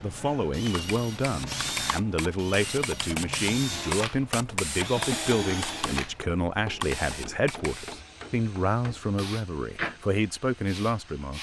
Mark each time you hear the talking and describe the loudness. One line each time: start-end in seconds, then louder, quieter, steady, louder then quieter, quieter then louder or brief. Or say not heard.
0.0-11.3 steady.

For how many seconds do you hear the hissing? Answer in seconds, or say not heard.
11 s.